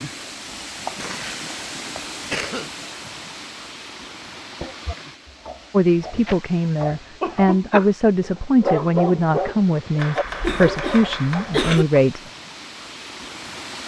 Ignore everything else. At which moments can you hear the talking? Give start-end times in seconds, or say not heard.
5.7-12.2.